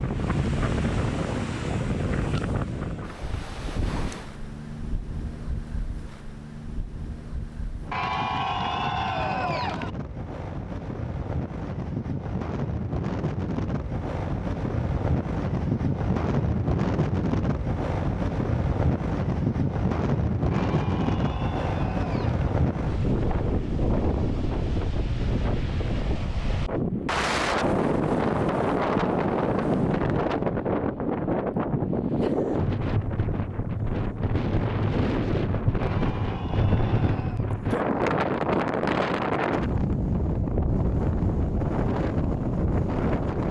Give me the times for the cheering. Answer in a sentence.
You can hear the cheering from 7.9 to 9.9 s, from 20.5 to 22.5 s and from 35.8 to 37.5 s.